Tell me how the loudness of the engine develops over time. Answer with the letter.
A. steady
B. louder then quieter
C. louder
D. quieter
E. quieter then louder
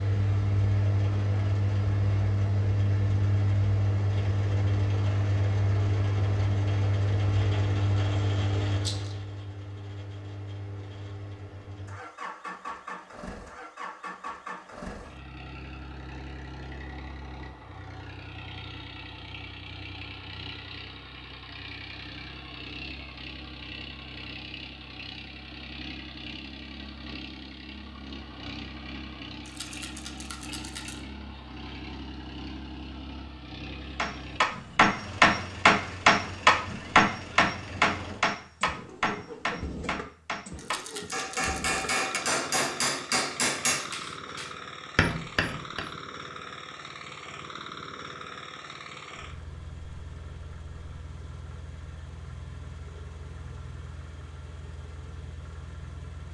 D.